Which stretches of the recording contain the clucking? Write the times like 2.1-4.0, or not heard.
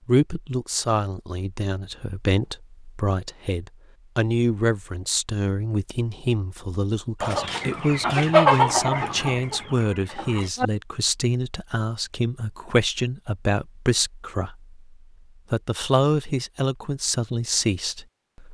7.2-10.7.